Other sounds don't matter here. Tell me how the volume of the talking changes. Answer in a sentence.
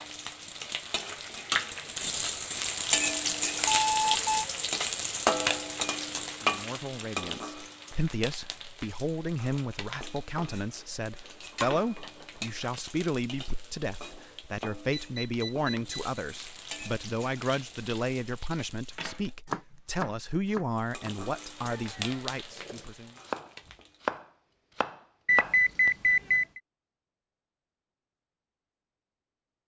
The volume of the talking stays about the same.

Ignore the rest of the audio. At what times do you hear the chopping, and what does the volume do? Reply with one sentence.
The chopping can be heard from 18.9 to 25.6 s, getting quieter then louder.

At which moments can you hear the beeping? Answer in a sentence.
You can hear the beeping from 3.7 to 4.5 s, from 14.9 to 16.1 s and from 25.2 to 26.6 s.